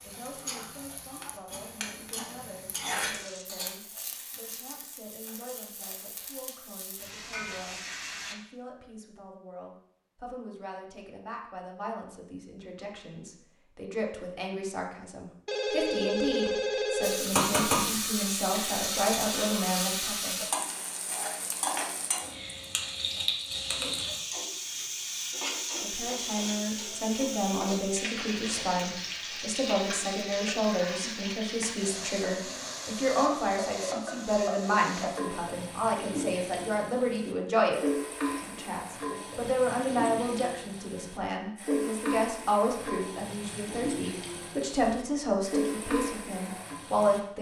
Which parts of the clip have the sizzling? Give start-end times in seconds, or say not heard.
0.0-8.3, 17.0-47.2.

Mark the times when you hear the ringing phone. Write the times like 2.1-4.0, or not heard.
15.4-17.3.